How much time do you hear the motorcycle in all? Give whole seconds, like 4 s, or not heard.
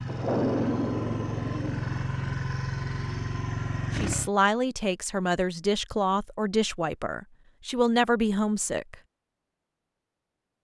4 s.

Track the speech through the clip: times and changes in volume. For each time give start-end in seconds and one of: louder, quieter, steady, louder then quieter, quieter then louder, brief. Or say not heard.
4.0-8.9 quieter then louder.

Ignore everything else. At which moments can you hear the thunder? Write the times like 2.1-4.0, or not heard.
0.1-2.5.